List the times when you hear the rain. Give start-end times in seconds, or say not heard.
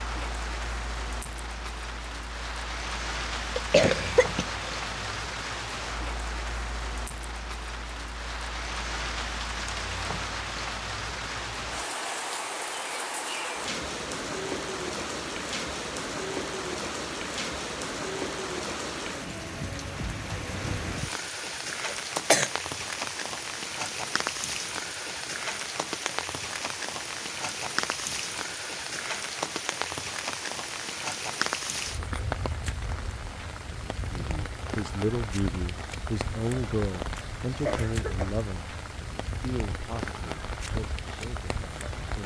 0.0-42.2.